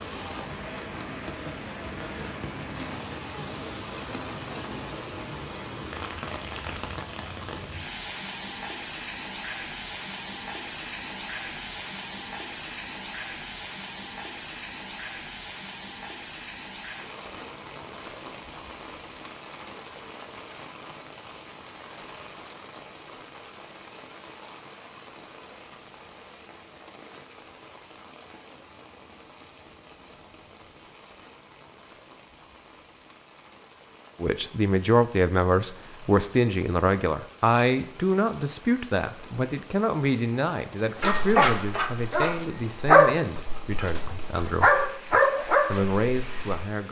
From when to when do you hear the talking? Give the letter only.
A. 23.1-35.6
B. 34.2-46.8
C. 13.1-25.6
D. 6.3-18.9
B.